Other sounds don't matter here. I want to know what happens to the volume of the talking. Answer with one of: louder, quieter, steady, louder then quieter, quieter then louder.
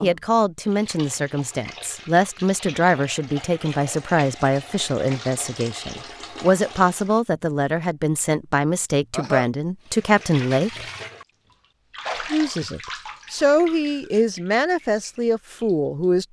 steady.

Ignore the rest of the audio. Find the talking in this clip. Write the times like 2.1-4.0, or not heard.
0.0-10.8, 12.3-16.2.